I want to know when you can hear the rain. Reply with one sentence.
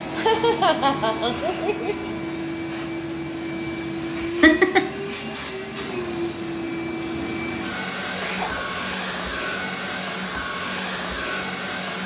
The rain can't be heard in this clip.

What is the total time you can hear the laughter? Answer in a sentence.
The laughter can be heard for 3 seconds in total.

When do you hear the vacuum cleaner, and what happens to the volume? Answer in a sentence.
The vacuum cleaner can be heard from 0.0 to 12.0 s, at a steady volume.